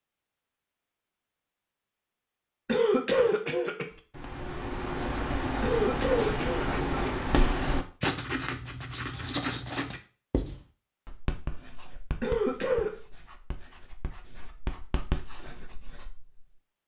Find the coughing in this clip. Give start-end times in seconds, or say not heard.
2.6-3.9, 5.6-7.3, 12.2-12.9.